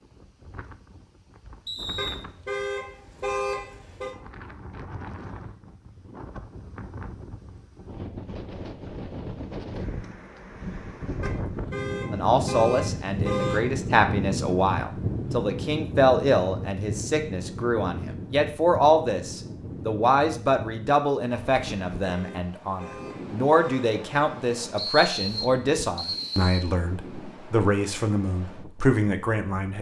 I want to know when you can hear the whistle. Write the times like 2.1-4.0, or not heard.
1.6-2.2, 24.8-26.6.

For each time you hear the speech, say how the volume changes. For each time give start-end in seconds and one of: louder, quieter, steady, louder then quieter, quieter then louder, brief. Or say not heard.
12.1-29.7 steady.